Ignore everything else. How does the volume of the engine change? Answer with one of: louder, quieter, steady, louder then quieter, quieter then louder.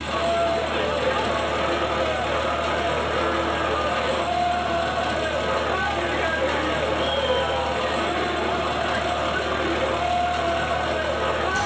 steady.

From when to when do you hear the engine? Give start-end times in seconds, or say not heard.
0.0-11.6.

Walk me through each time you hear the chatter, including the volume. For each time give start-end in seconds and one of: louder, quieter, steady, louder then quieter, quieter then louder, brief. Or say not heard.
0.0-11.6 steady.